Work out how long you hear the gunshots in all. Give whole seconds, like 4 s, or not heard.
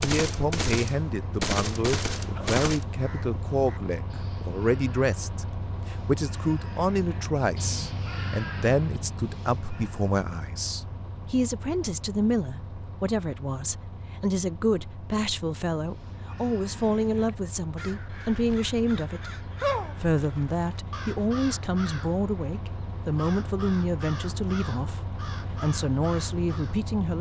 3 s.